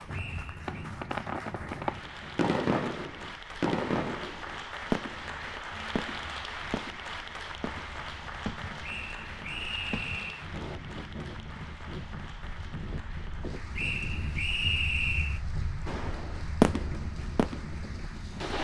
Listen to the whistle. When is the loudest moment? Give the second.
15 s.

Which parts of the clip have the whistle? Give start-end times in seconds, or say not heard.
0.1-0.7, 8.8-10.4, 13.8-15.4.